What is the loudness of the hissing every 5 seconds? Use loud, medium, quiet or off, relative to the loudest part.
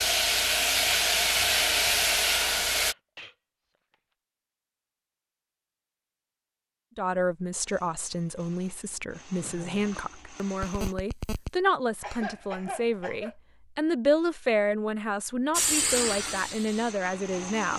loud, off, off, medium.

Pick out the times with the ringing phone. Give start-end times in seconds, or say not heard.
10.6-11.5.